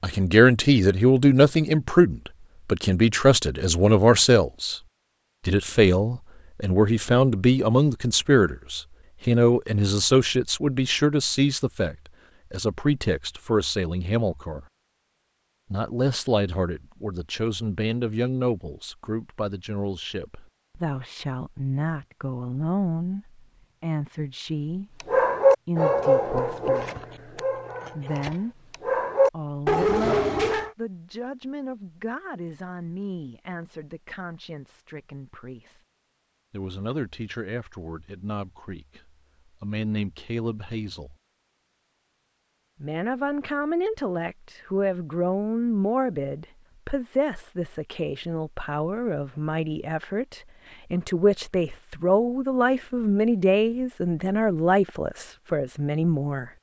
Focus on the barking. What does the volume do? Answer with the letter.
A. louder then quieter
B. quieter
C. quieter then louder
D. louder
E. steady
C.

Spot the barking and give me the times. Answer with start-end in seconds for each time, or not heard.
25.0-30.7.